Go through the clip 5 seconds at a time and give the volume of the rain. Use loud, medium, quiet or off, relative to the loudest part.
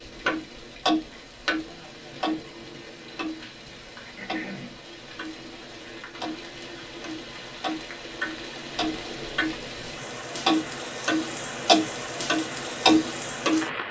medium, medium, loud.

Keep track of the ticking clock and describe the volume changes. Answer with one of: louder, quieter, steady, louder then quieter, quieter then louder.
quieter then louder.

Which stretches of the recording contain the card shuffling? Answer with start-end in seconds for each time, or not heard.
not heard.